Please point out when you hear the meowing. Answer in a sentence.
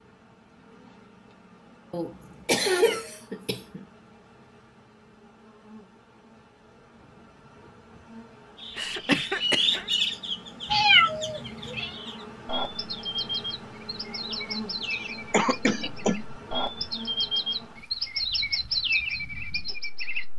The meowing can be heard from 2.6 to 3.2 s and from 10.7 to 11.9 s.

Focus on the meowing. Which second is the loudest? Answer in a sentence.
The volume of the meowing peaks at 11 seconds.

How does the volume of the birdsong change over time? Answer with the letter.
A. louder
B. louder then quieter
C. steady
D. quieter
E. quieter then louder
E.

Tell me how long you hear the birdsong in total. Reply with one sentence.
The birdsong can be heard for 12 seconds in total.